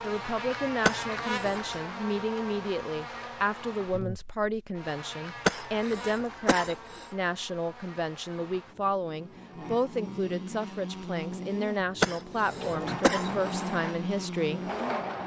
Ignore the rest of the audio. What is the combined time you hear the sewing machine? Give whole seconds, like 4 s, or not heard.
3 s.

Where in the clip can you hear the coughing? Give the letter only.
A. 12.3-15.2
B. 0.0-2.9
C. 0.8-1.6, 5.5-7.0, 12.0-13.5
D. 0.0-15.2
C.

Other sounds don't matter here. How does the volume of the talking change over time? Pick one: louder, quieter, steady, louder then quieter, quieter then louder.
steady.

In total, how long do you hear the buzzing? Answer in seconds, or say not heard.
15 s.